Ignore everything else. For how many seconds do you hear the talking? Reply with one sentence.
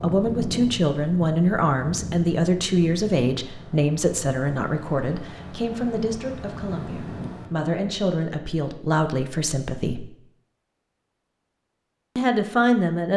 The talking can be heard for 11 seconds in total.